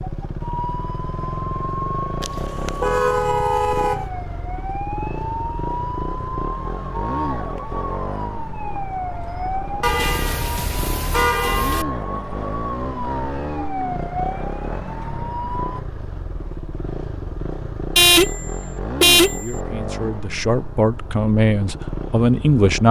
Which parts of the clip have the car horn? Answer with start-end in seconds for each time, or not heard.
2.2-4.0, 9.8-11.8, 17.9-19.6.